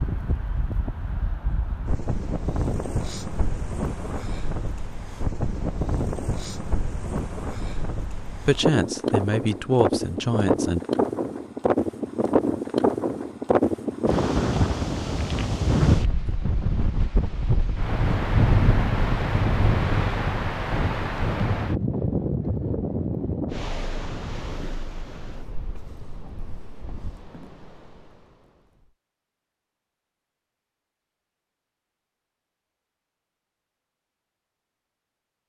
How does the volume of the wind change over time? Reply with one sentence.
The volume of the wind goes up, then down.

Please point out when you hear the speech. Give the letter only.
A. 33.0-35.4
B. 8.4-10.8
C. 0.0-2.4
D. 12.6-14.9
B.